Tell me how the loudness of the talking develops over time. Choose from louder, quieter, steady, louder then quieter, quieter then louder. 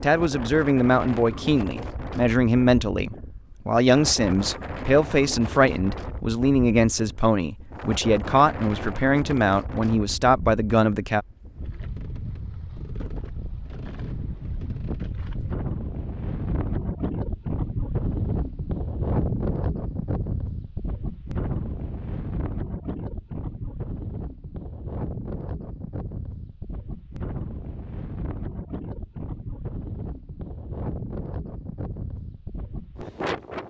steady.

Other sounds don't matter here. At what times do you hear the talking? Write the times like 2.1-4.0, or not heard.
0.0-11.2.